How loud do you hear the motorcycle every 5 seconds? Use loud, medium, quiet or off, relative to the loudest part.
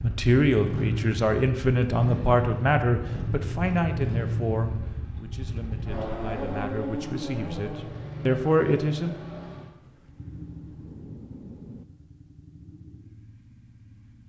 loud, loud, quiet.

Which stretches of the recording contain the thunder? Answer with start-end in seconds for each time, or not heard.
9.8-11.8.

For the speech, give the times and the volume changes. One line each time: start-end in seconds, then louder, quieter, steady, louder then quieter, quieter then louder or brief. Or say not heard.
0.0-9.2 quieter then louder.